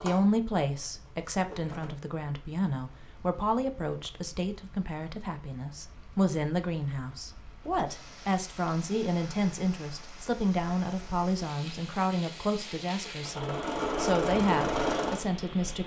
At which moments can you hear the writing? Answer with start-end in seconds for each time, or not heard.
not heard.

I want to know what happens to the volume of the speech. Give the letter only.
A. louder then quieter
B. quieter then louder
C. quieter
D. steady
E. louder
D.